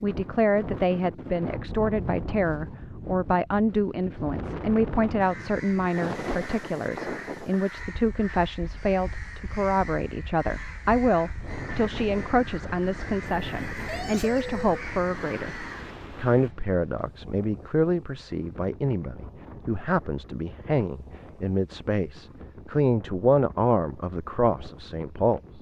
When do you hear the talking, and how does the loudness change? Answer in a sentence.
The talking can be heard from 0.0 to 25.5 s, at a steady volume.